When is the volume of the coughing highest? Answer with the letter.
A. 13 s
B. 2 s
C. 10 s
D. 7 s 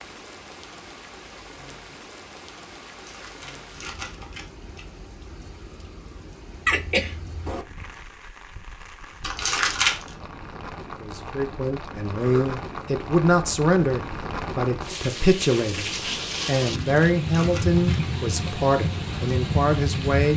D.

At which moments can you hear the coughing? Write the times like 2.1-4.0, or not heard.
6.7-7.7, 12.2-12.6.